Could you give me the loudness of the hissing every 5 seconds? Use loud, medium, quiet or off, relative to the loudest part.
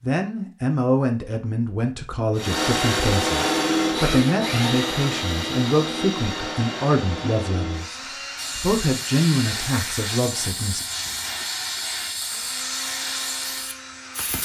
off, loud, loud.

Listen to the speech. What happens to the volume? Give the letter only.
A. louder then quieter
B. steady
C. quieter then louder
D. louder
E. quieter
B.